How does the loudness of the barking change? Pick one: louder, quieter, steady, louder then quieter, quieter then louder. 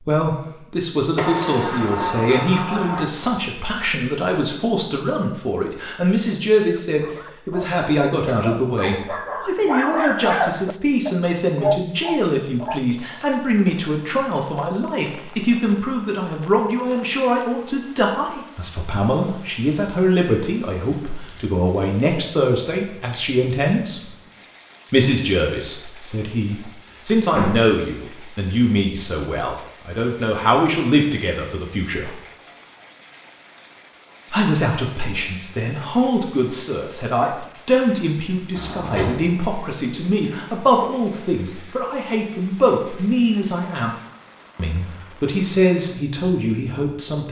louder.